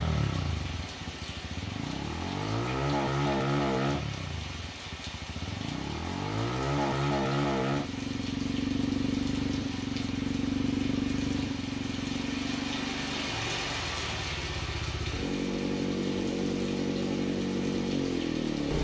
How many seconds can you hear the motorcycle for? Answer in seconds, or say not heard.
19 s.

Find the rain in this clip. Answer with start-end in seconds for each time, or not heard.
0.0-18.7.